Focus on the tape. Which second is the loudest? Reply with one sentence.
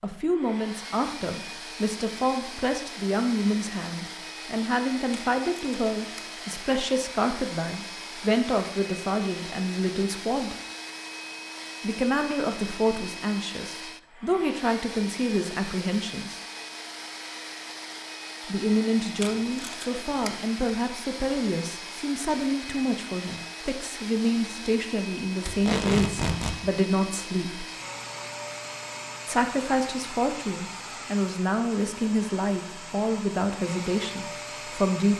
The loudest moment of the tape is at 26 seconds.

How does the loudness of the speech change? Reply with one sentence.
The loudness of the speech stays about the same.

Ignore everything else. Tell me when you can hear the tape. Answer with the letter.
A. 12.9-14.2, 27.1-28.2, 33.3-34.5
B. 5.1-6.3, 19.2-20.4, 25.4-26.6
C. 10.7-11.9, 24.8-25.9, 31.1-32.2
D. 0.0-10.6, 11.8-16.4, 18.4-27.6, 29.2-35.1
B.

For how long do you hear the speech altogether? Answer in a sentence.
You can hear the speech for 30 seconds altogether.